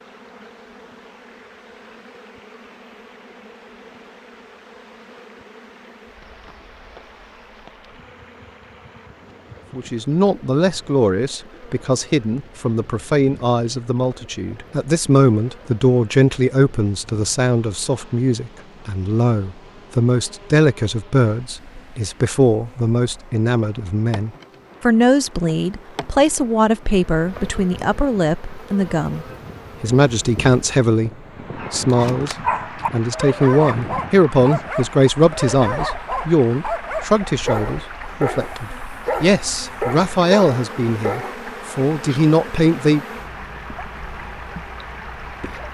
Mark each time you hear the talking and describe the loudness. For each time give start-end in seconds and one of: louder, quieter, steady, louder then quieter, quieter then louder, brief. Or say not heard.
9.8-43.0 steady.